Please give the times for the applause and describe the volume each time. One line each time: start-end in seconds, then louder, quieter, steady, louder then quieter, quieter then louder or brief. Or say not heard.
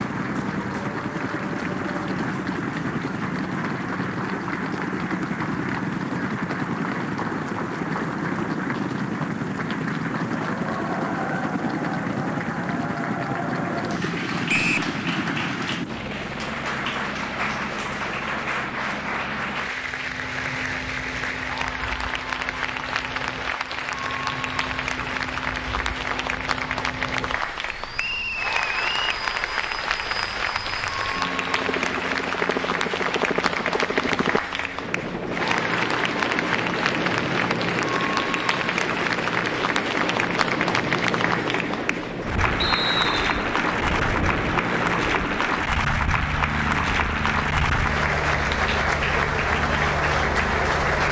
0.0-51.0 louder.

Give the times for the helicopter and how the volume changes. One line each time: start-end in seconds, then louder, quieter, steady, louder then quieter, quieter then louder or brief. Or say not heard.
0.0-51.0 quieter then louder.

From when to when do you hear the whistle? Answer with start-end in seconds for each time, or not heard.
14.4-14.9, 27.9-29.2, 42.6-43.5.